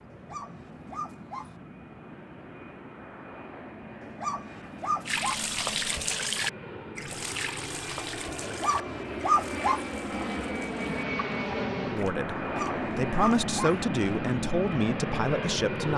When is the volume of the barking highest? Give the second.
9 s.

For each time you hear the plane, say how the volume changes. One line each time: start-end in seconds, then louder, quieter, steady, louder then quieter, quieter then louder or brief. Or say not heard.
0.0-15.9 louder.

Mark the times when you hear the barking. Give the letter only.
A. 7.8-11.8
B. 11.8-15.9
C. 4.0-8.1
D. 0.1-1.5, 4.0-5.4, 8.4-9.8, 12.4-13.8
D.